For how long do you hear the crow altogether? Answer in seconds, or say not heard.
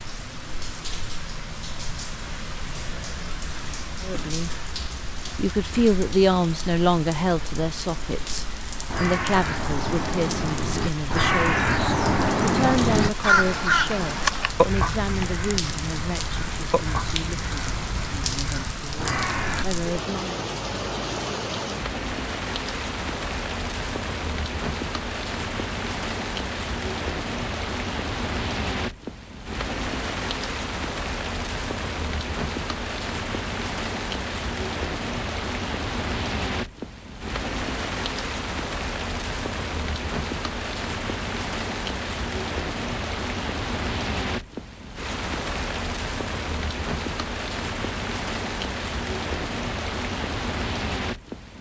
11 s.